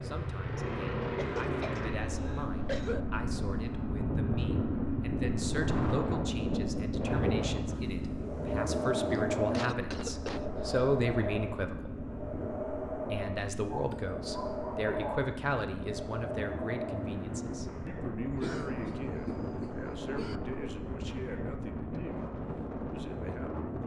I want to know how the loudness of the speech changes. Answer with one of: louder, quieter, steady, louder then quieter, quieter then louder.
louder then quieter.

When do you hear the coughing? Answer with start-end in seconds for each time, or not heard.
1.0-3.0, 9.1-10.7, 18.4-20.4.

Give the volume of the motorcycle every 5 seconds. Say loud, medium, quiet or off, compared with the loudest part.
loud, loud, medium, medium, medium.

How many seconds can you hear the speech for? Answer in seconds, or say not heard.
23 s.